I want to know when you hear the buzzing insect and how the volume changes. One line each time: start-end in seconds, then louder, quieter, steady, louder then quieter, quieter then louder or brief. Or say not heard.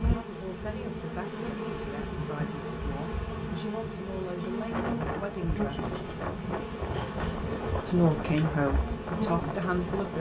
0.0-10.1 steady.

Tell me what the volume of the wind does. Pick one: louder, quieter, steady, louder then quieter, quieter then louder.
steady.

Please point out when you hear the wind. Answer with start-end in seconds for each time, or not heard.
4.7-10.1.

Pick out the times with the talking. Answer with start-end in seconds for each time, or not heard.
0.1-6.1, 7.8-10.1.